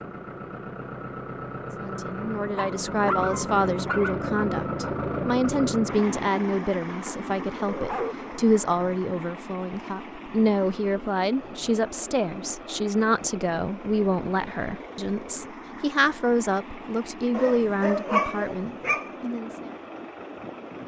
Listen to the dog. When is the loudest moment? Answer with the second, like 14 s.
18 s.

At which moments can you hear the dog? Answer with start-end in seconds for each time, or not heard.
2.5-4.2, 7.7-9.0, 17.3-19.1.